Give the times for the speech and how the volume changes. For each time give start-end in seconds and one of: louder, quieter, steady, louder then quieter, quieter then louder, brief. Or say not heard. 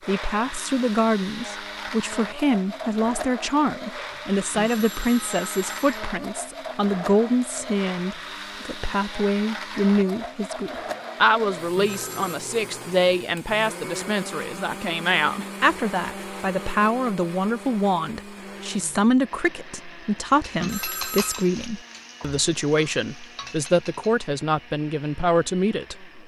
0.1-26.1 steady.